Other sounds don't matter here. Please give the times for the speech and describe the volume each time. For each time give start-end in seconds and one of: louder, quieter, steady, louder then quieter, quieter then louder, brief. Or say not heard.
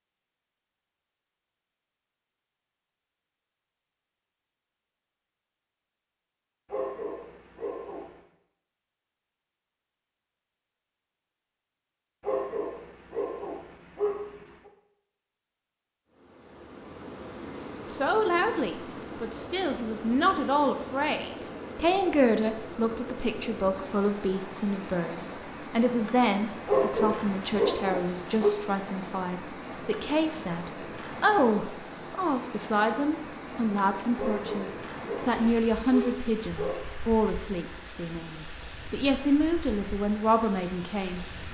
17.9-41.2 steady.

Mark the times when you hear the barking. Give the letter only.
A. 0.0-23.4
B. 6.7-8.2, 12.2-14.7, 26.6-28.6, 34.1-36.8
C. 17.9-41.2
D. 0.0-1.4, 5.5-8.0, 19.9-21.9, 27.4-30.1
B.